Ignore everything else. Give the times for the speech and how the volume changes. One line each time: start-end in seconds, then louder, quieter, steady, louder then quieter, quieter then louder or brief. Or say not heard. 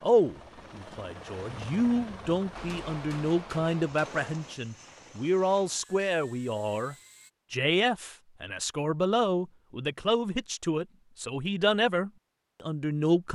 0.0-13.3 steady.